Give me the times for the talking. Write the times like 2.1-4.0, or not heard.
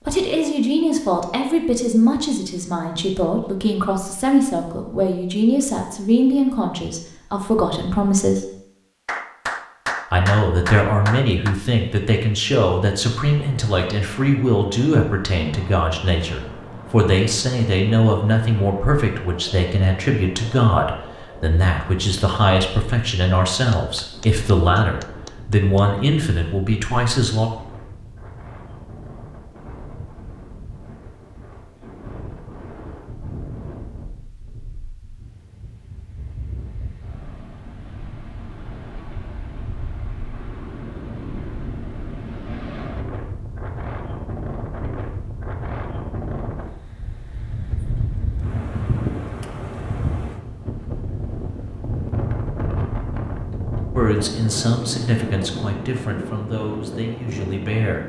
0.1-8.4, 10.1-27.5, 54.0-58.0.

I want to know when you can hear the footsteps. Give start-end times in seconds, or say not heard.
not heard.